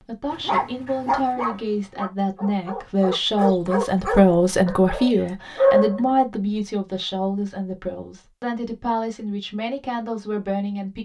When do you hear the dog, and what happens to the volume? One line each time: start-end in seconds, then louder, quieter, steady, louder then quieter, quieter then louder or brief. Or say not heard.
0.3-6.2 quieter then louder.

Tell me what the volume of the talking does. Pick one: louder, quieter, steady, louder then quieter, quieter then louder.
louder then quieter.